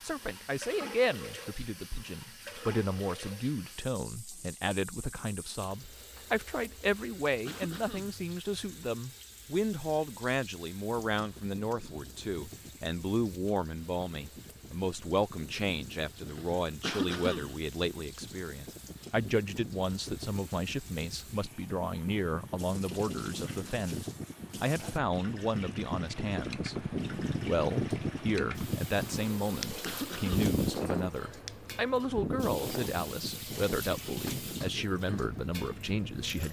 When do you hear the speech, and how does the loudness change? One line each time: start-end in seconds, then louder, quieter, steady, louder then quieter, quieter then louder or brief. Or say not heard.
0.0-36.4 steady.